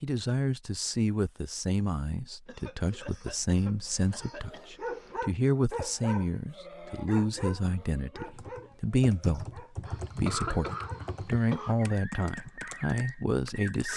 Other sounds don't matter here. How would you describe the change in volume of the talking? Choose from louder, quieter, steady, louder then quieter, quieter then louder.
steady.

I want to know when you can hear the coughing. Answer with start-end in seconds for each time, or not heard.
2.5-5.2, 9.8-11.8.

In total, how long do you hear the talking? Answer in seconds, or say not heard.
14 s.